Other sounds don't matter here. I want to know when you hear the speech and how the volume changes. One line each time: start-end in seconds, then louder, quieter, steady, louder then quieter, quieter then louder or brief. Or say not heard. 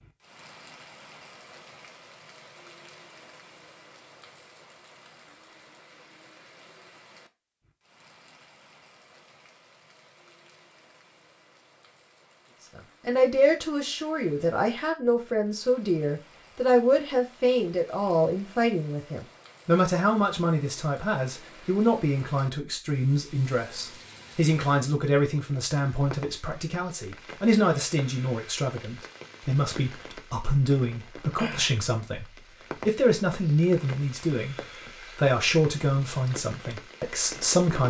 12.8-32.2 steady
32.9-34.5 brief
35.1-37.8 brief.